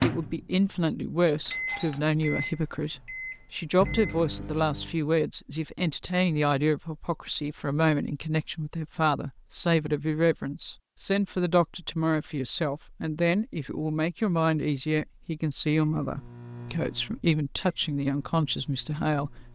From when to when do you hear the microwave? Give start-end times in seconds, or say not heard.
0.0-5.0, 16.0-19.5.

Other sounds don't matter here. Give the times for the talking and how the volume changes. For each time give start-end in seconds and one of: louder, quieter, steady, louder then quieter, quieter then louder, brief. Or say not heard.
0.0-19.5 steady.